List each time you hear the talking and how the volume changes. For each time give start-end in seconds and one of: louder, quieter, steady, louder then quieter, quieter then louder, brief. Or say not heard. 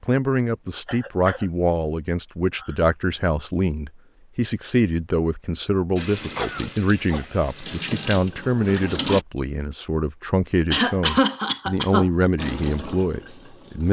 0.0-13.8 steady.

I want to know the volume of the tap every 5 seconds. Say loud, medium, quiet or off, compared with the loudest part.
off, loud, loud.